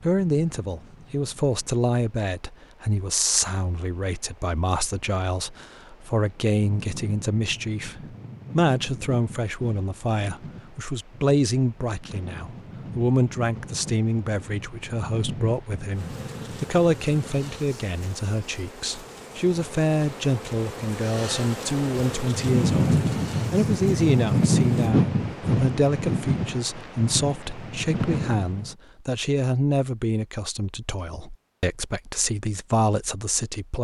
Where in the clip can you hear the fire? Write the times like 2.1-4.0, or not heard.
not heard.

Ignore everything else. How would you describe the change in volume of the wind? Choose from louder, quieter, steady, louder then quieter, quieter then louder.
louder.